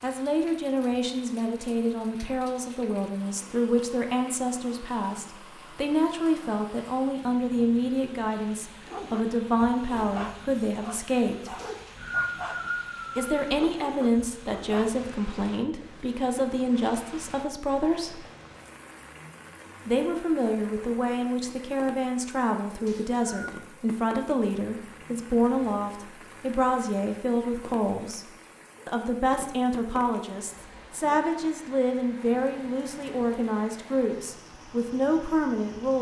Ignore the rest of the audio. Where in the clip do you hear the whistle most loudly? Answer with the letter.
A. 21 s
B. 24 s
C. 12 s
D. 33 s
C.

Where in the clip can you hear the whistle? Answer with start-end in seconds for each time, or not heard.
11.6-13.4, 22.9-23.5.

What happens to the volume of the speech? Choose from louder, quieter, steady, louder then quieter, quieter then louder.
steady.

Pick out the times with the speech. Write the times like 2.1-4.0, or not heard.
0.0-11.6, 13.2-18.2, 19.9-35.9.